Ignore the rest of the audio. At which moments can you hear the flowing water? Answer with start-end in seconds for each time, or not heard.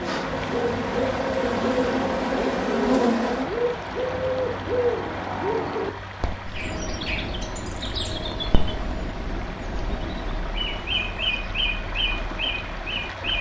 0.0-13.3.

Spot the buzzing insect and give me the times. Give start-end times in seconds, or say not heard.
0.0-3.5.